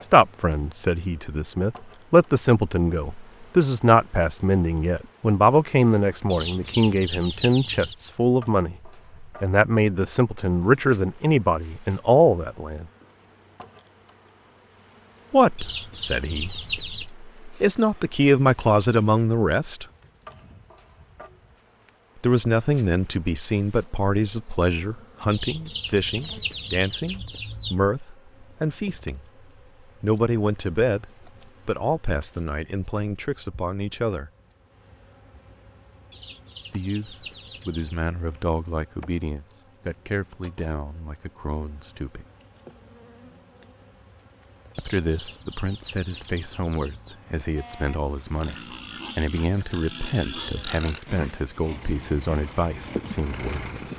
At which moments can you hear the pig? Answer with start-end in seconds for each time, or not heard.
47.5-53.0.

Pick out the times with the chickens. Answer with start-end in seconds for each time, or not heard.
6.3-8.0, 15.6-17.1, 25.3-27.8, 36.1-38.0, 44.8-47.1.